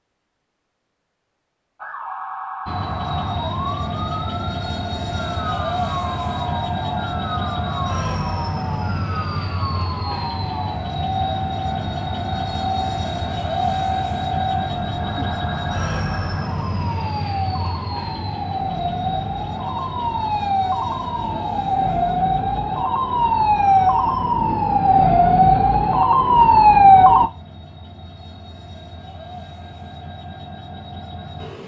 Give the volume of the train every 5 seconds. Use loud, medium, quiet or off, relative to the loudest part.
loud, loud, loud, loud, medium, quiet, medium.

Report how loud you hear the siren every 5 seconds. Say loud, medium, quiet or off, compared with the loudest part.
quiet, quiet, quiet, quiet, medium, loud, off.